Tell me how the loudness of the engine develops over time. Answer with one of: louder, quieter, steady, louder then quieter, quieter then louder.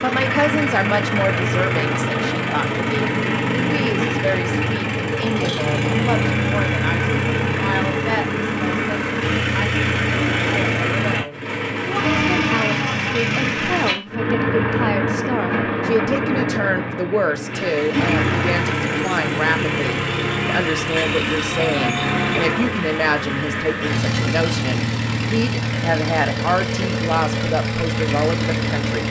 steady.